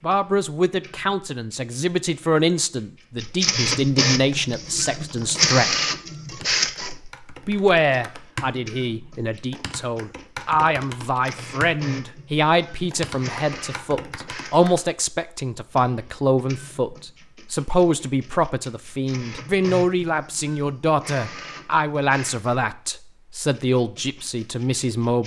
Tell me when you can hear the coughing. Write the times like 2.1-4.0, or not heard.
not heard.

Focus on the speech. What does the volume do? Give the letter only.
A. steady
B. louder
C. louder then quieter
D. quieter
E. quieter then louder
A.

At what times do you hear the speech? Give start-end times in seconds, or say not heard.
0.0-5.7, 7.5-25.2.